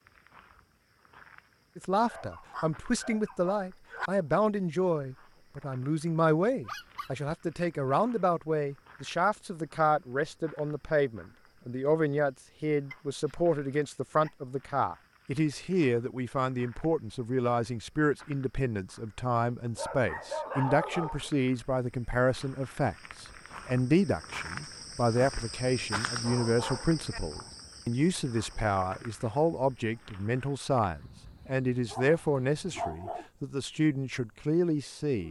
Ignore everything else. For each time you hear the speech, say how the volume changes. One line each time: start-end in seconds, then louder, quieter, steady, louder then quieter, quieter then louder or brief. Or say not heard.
1.8-35.2 steady.